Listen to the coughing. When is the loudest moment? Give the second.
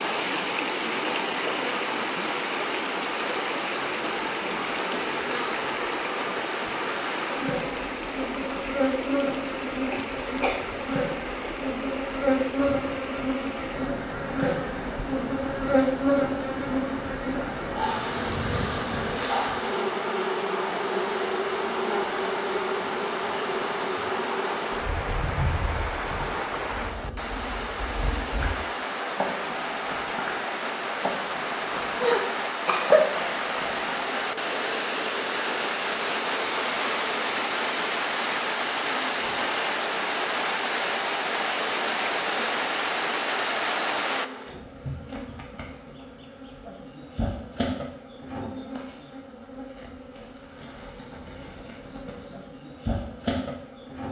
33 s.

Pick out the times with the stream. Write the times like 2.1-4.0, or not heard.
0.0-44.3.